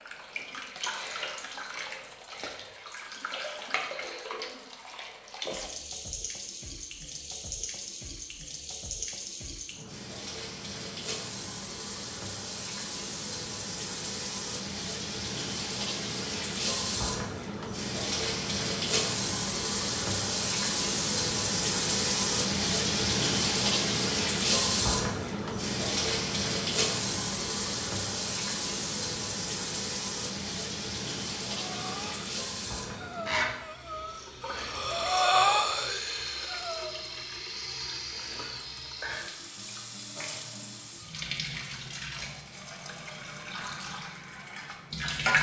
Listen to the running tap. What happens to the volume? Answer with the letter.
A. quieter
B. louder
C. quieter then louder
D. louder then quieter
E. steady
D.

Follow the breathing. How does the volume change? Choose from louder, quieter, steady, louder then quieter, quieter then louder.
louder then quieter.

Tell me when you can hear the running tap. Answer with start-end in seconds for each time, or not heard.
0.0-45.3.